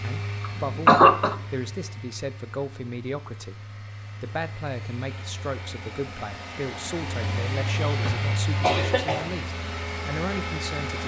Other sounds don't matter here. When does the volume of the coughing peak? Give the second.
1 s.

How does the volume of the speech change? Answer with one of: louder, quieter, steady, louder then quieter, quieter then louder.
steady.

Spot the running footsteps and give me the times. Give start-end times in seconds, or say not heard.
not heard.